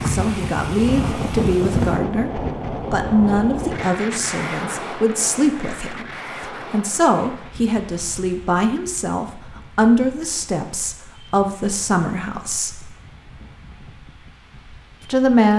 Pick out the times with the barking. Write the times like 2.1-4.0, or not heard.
not heard.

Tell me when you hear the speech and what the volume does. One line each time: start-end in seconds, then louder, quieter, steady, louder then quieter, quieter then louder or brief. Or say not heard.
0.1-2.3 brief
2.9-12.9 steady
15.1-15.5 brief.